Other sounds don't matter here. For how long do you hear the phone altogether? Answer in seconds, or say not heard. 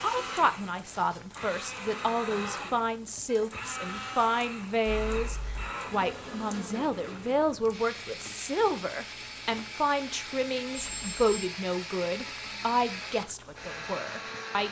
2 s.